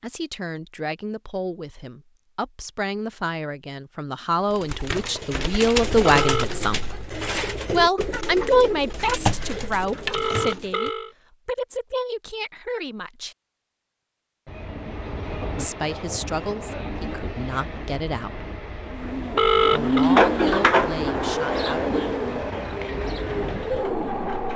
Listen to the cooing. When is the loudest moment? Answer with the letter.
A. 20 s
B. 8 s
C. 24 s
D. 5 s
A.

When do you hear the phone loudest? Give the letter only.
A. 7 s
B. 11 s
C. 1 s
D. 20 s
D.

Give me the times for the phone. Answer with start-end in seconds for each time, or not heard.
6.0-6.7, 10.1-11.1, 18.9-20.1.